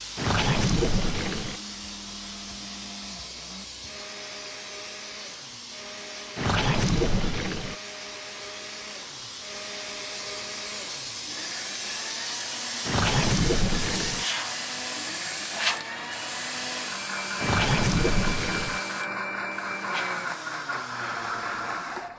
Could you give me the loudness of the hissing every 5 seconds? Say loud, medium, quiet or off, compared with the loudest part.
medium, medium, loud, loud, medium.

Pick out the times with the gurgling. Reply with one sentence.
You can hear the gurgling from 0.1 to 1.6 s, from 6.3 to 7.8 s, from 12.8 to 14.2 s and from 17.4 to 18.8 s.